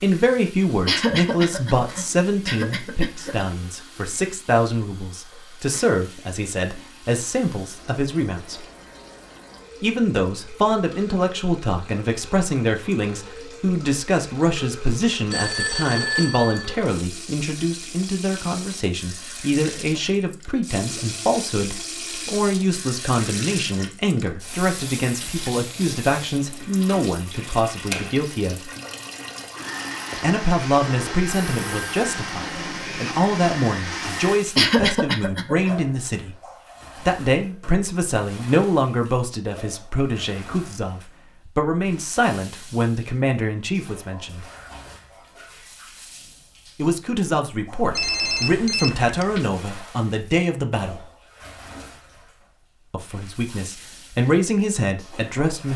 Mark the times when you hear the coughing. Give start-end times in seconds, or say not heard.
0.8-3.5, 34.5-35.8.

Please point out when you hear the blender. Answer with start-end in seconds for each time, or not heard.
29.4-34.4.